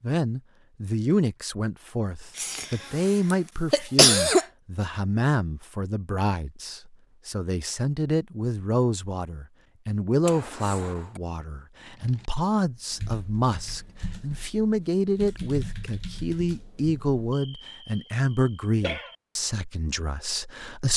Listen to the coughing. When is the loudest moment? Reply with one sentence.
The loudest moment of the coughing is at 4 seconds.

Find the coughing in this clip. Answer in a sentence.
You can hear the coughing from 2.4 to 4.5 s, from 10.2 to 11.2 s and from 17.3 to 19.1 s.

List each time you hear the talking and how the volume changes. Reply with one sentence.
You can hear the talking from 0.0 to 20.9 s, at a steady volume.